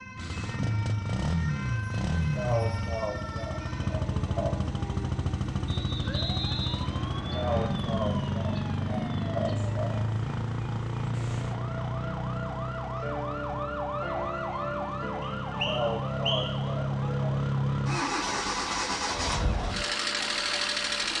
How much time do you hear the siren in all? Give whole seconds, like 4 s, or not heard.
21 s.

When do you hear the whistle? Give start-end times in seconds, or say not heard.
5.7-7.7, 15.2-16.6.